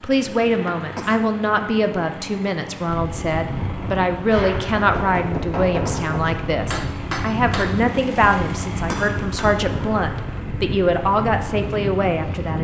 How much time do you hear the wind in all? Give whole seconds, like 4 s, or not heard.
10 s.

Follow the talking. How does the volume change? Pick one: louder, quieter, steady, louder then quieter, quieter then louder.
steady.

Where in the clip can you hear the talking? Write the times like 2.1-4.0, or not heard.
0.0-12.5.